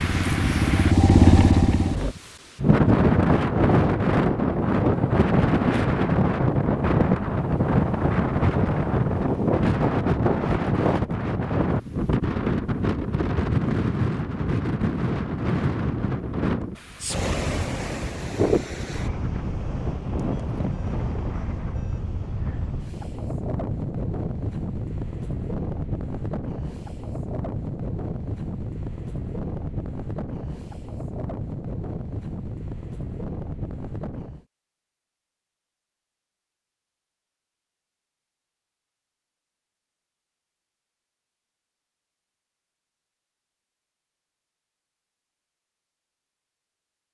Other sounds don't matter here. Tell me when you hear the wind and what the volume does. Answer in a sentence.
You can hear the wind from 0.0 to 34.5 s, getting quieter.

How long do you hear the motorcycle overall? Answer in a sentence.
You can hear the motorcycle for 2 seconds altogether.